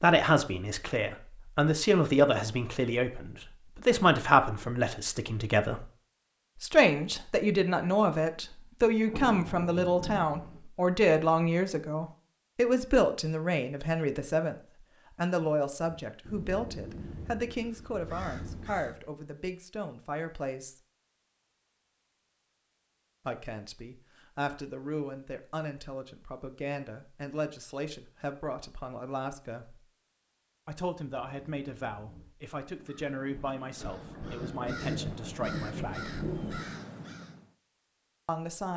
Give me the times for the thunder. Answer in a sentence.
The thunder can be heard from 9.1 to 10.6 s and from 33.8 to 36.8 s.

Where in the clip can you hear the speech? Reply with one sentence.
You can hear the speech from 0.0 to 5.8 s, from 6.6 to 20.8 s, from 23.2 to 29.8 s, from 30.6 to 36.2 s and from 38.2 to 38.7 s.